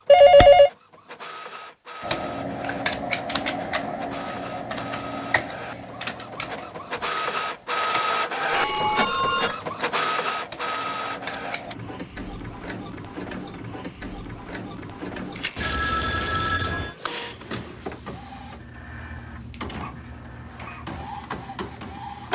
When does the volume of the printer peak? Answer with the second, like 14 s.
8 s.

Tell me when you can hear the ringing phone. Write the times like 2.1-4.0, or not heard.
0.1-0.7, 8.5-9.6, 15.6-16.9.